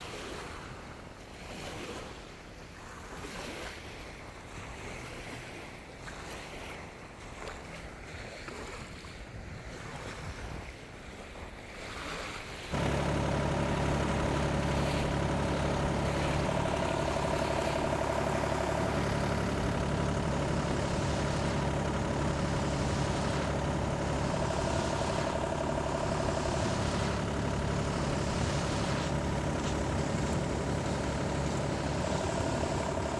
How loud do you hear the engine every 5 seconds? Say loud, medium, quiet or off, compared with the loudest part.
off, off, loud, loud, loud, loud, loud.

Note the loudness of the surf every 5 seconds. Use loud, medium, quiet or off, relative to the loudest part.
medium, medium, medium, loud, loud, loud, loud.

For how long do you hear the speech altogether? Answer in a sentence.
You can't hear the speech here.